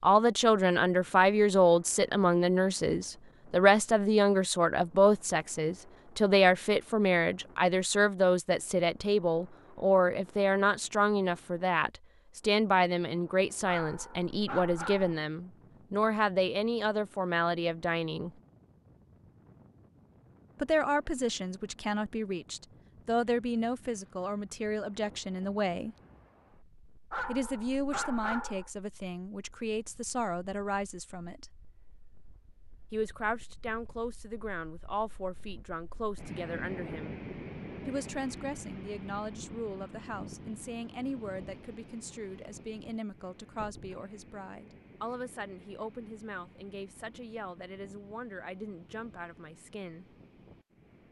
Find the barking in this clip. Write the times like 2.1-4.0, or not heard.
13.7-15.2, 27.1-28.7.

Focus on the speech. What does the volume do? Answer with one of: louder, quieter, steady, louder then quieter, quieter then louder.
quieter.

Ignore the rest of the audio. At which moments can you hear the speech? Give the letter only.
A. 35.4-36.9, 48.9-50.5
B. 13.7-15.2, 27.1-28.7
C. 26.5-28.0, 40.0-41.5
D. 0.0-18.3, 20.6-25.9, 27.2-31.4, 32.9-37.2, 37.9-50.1
D.